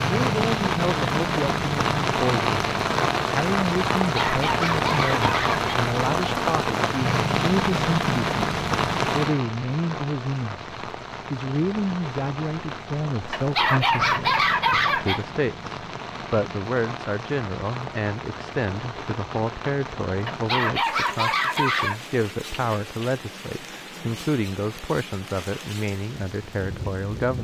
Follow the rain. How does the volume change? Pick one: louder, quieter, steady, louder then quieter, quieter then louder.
quieter.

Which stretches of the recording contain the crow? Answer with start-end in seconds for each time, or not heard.
not heard.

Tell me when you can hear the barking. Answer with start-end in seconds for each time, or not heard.
4.0-5.7, 13.3-15.2, 20.2-22.0.